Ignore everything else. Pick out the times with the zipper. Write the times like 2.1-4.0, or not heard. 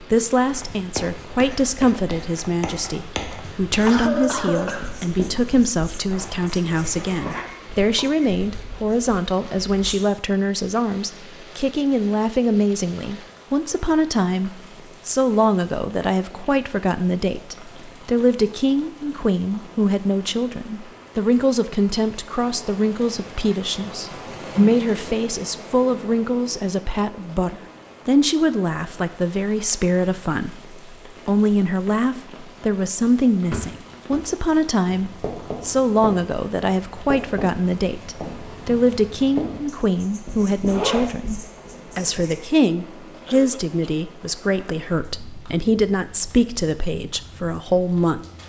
6.0-7.5, 40.6-41.1.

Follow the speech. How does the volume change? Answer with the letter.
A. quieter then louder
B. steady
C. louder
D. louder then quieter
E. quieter
B.